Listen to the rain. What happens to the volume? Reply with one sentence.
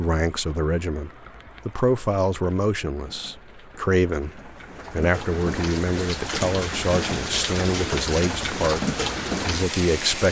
The loudness of the rain goes up.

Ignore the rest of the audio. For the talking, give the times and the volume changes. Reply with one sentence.
You can hear the talking from 0.0 to 10.2 s, at a steady volume.